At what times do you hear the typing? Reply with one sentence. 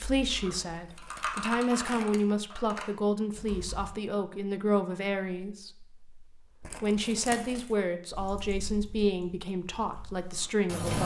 The typing can be heard from 0.0 to 4.0 s and from 8.1 to 11.0 s.